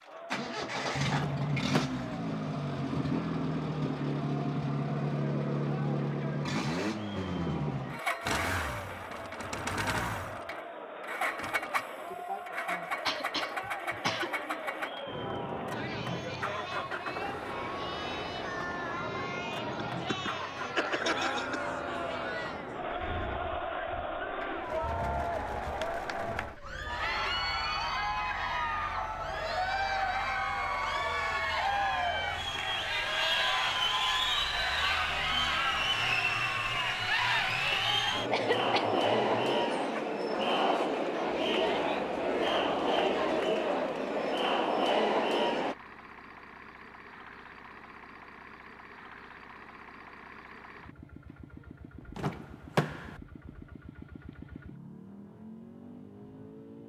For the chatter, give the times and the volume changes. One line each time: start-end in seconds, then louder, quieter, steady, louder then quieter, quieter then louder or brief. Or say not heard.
0.0-45.8 louder.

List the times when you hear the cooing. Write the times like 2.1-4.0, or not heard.
not heard.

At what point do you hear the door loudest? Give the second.
53 s.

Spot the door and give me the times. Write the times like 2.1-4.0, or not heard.
1.1-2.1, 52.1-53.2.